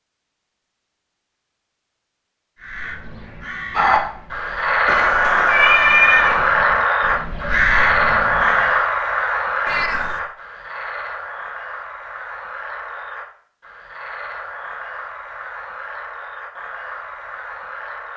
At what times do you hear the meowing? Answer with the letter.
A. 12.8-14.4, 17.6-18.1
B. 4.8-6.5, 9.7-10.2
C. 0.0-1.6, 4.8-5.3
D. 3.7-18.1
B.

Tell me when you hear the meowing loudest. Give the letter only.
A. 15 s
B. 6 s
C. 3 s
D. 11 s
B.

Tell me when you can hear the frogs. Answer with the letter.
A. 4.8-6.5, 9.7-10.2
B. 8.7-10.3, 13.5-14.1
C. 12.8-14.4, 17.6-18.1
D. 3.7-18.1
D.